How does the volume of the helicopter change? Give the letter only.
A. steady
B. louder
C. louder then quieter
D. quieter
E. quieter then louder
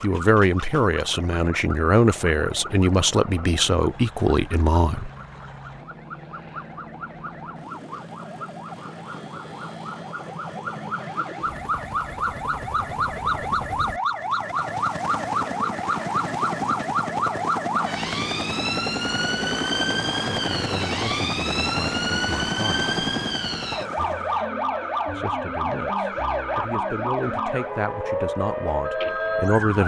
B.